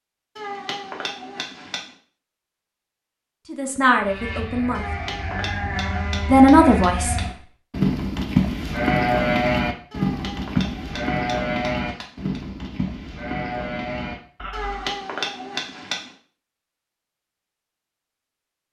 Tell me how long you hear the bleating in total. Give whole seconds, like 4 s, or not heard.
11 s.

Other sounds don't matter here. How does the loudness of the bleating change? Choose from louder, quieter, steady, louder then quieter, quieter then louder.
louder then quieter.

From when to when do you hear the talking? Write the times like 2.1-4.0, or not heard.
3.5-4.8, 6.2-7.2.